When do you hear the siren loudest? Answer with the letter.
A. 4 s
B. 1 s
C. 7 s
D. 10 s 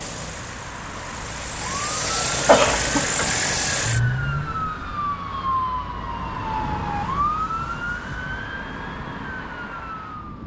C.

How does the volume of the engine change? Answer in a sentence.
The loudness of the engine goes up.